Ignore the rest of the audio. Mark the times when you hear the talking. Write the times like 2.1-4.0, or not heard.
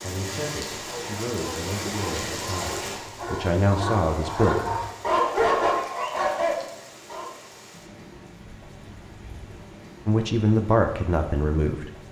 0.0-4.7, 10.1-11.9.